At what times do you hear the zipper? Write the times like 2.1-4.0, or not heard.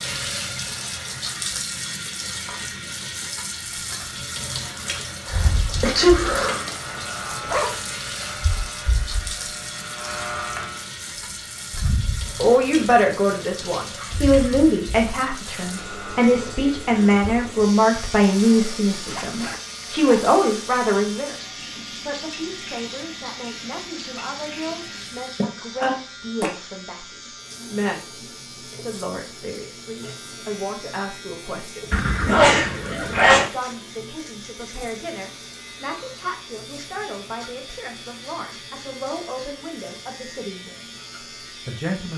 6.7-7.8, 19.0-20.4, 31.9-33.4.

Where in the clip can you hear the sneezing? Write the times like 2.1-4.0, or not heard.
5.2-6.7, 25.4-25.9, 31.8-33.5.